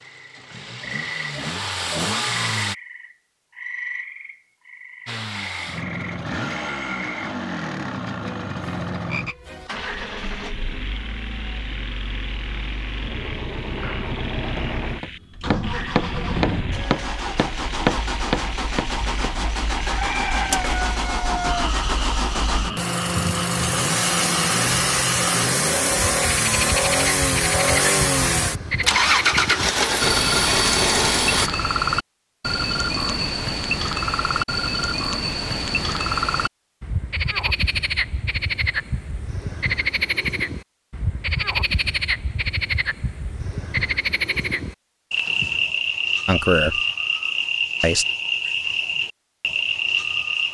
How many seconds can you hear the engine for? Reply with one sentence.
You can hear the engine for 29 seconds altogether.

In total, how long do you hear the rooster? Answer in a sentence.
The rooster can be heard for 2 seconds in total.